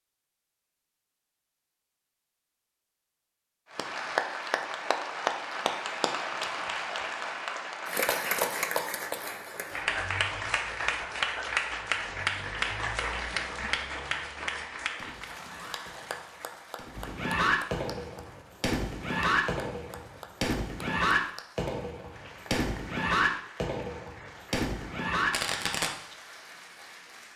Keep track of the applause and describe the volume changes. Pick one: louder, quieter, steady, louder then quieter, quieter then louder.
quieter.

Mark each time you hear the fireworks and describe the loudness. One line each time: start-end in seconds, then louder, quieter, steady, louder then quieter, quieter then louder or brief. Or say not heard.
14.9-25.9 louder.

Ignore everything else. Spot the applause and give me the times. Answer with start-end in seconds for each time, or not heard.
3.7-27.3.